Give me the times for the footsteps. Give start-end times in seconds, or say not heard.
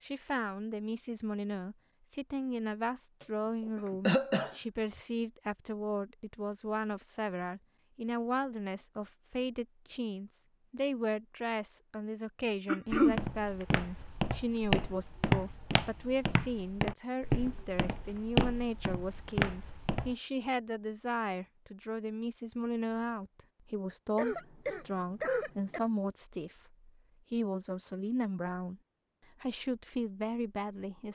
12.9-20.1.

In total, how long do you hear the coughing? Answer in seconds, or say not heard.
3 s.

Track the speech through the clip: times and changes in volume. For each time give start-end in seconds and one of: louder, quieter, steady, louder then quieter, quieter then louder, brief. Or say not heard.
0.0-28.8 steady
29.4-31.1 brief.